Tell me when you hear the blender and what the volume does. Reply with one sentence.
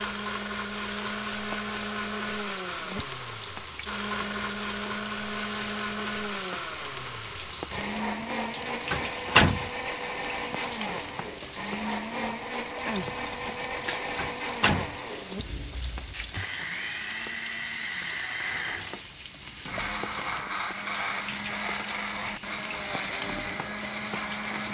The blender can be heard from 0.0 to 24.6 s, at a steady volume.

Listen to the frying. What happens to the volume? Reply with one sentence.
The volume of the frying stays about the same.